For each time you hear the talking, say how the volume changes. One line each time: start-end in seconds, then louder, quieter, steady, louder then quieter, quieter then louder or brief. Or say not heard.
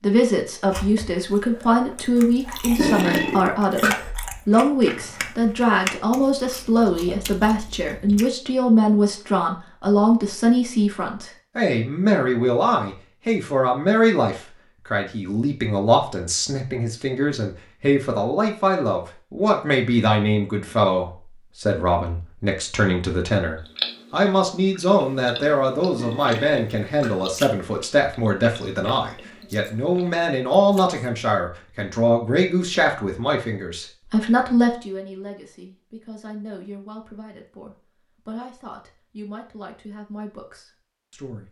0.0-41.4 quieter.